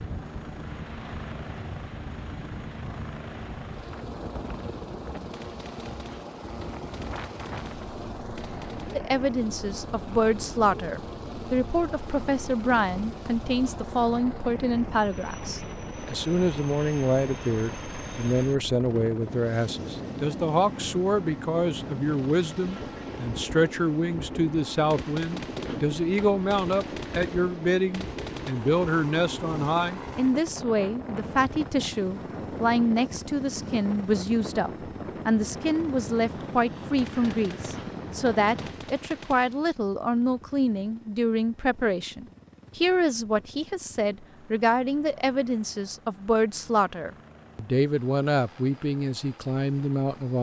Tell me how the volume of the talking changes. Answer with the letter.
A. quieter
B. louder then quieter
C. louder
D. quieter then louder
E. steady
E.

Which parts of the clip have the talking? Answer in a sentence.
The talking can be heard from 8.9 to 50.3 s.